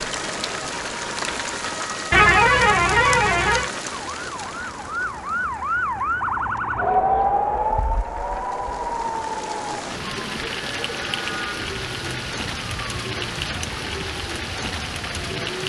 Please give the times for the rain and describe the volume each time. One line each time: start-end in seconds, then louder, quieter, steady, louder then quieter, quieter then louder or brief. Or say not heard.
0.0-15.6 quieter then louder.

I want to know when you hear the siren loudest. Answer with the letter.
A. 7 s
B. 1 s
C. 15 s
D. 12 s
A.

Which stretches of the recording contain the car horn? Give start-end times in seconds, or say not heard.
2.1-3.7.